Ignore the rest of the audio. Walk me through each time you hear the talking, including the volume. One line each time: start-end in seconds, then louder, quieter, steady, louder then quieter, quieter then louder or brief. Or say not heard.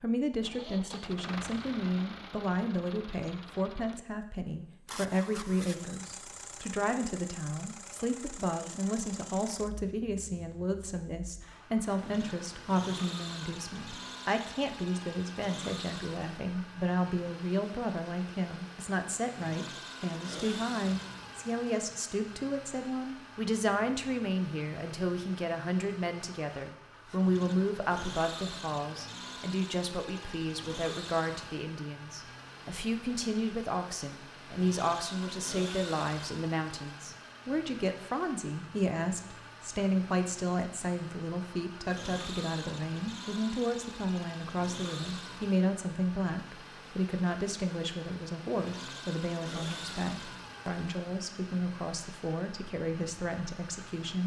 0.0-54.2 steady.